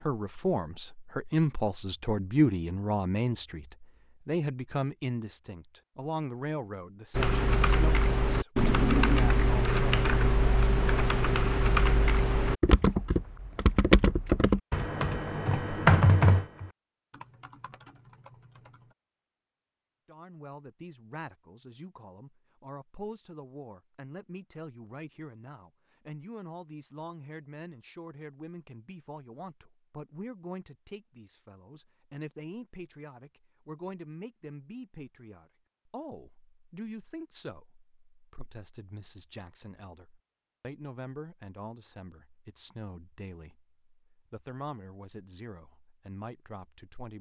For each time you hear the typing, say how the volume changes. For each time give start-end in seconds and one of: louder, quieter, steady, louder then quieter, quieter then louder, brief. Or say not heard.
7.2-18.9 quieter.